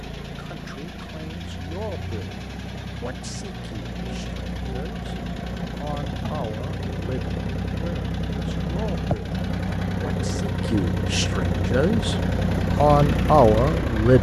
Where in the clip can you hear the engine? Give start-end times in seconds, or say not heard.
0.0-14.1.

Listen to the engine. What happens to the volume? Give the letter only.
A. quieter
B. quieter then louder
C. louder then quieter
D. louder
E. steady
D.